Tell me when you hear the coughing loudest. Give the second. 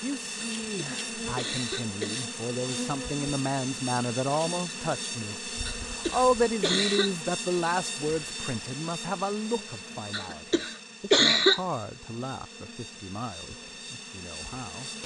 11 s.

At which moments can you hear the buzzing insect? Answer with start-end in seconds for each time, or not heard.
0.0-15.0.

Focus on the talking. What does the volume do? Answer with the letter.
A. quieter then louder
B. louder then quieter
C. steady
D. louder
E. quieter
B.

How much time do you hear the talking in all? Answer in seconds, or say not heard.
15 s.